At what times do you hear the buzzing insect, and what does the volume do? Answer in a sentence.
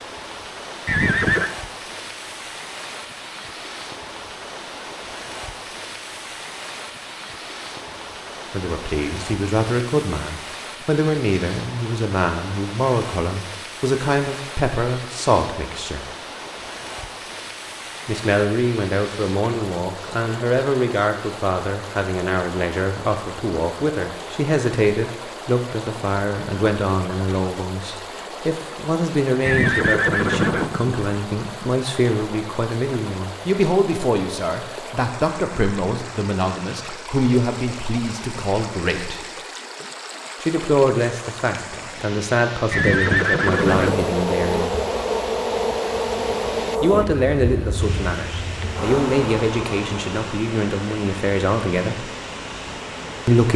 You can hear the buzzing insect from 43.6 to 53.4 s, getting quieter.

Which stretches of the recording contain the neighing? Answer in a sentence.
You can hear the neighing from 0.8 to 1.5 s, from 29.4 to 31.0 s and from 42.7 to 44.0 s.